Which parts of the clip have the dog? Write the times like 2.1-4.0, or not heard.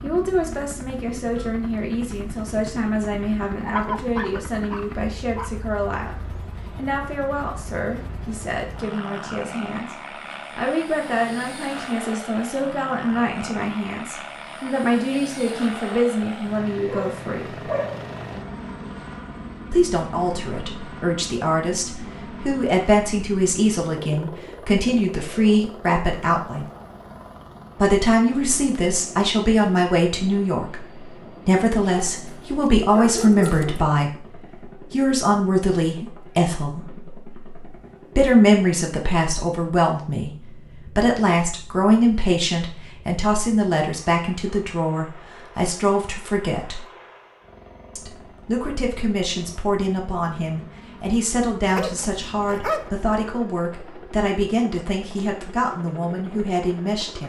3.6-5.5, 16.9-18.1, 31.9-33.9, 51.8-52.9.